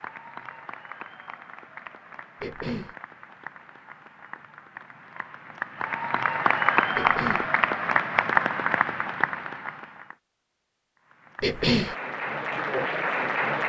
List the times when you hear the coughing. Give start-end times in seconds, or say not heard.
2.4-3.0, 7.0-7.5, 11.4-11.9.